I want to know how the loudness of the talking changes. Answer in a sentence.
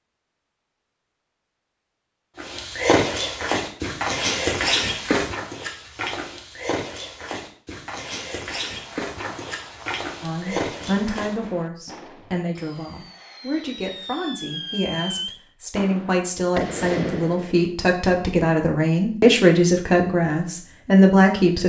The loudness of the talking goes up.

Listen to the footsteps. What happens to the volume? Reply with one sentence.
The volume of the footsteps goes down.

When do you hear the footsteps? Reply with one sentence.
You can hear the footsteps from 2.4 to 11.5 s.